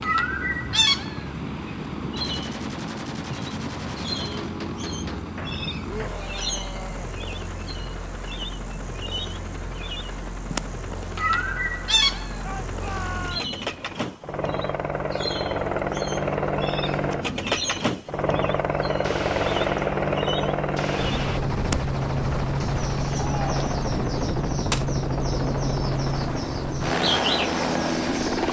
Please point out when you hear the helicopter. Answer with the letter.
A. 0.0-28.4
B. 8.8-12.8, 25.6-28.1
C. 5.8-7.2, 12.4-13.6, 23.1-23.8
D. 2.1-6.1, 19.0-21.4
A.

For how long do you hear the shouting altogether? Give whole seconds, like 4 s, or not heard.
3 s.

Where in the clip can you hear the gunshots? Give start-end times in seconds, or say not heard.
2.1-6.1, 19.0-21.4.